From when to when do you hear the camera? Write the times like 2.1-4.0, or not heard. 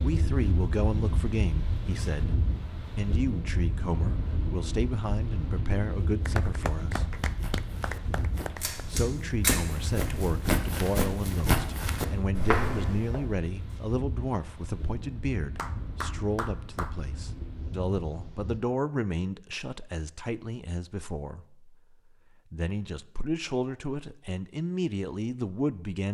8.6-9.7.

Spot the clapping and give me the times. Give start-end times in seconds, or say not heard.
6.2-8.8, 15.6-16.9.